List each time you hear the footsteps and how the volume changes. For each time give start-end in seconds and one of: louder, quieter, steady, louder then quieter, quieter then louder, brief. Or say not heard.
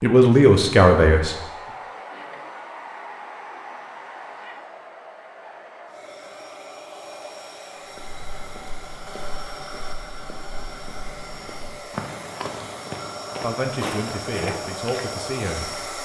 8.0-16.0 louder.